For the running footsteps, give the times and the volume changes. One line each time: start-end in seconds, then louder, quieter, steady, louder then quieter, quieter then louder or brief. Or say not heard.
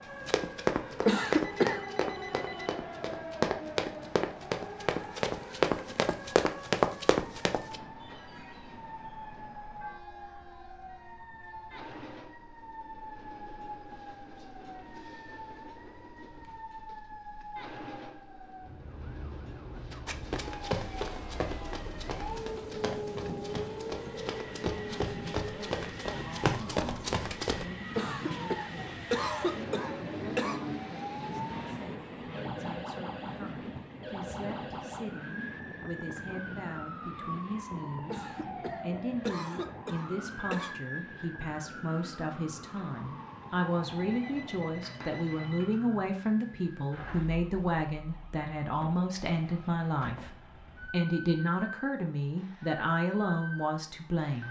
0.2-7.8 quieter then louder
19.9-27.6 quieter then louder.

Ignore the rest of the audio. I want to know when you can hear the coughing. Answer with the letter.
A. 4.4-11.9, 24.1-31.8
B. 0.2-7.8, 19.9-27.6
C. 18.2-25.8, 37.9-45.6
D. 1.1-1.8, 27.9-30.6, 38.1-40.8
D.